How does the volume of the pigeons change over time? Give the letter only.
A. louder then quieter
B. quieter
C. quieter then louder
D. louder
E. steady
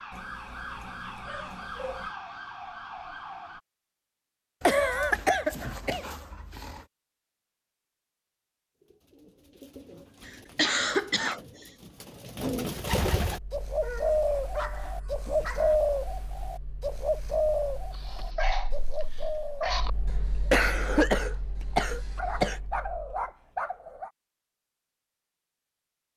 A.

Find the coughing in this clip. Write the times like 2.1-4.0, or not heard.
4.7-6.1, 10.2-11.4, 20.1-22.6.